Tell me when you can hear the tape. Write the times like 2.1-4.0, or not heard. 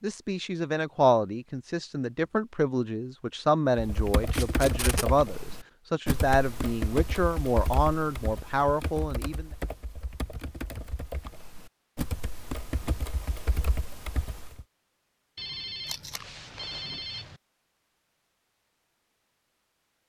4.3-5.0, 15.8-16.2.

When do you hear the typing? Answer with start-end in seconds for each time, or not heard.
3.8-14.7.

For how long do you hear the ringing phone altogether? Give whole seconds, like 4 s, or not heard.
2 s.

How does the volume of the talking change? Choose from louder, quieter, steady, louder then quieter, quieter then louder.
steady.